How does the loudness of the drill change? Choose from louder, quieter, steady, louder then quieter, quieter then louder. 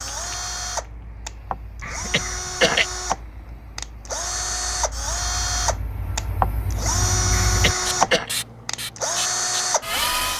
louder.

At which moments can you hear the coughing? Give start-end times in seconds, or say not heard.
1.8-2.9, 7.3-8.3.